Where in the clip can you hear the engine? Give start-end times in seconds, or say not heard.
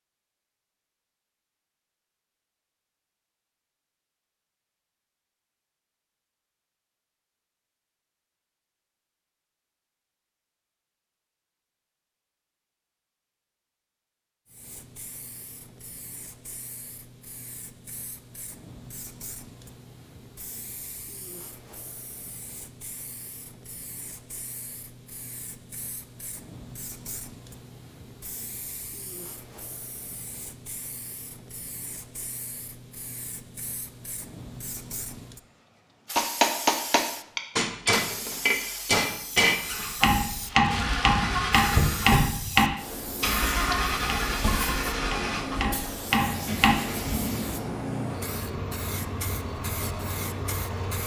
39.5-51.0.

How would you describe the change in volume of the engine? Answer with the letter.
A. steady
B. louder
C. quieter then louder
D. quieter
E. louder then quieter
D.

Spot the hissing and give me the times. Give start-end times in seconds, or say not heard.
14.4-51.0.